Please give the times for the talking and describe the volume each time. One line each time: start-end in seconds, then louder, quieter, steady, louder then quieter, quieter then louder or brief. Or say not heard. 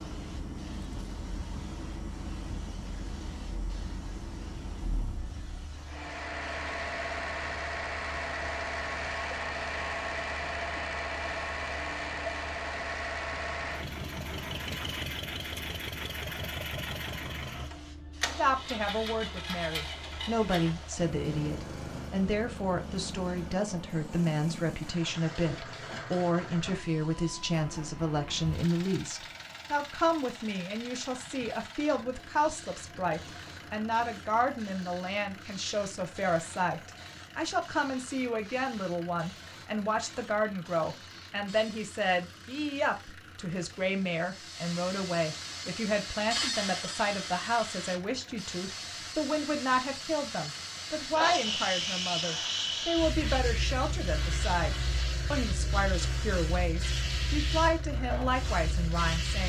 18.4-59.4 steady.